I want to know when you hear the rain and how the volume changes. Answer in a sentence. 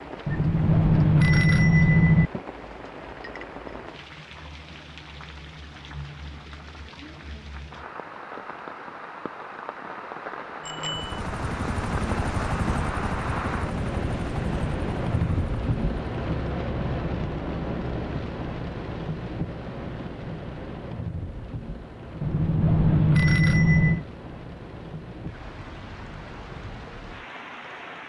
You can hear the rain from 0.0 to 28.0 s, getting louder then quieter.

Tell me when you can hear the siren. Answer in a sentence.
The siren can't be heard in this clip.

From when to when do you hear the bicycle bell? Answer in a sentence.
The bicycle bell can be heard from 0.2 to 2.3 s, from 10.6 to 11.2 s and from 22.2 to 24.0 s.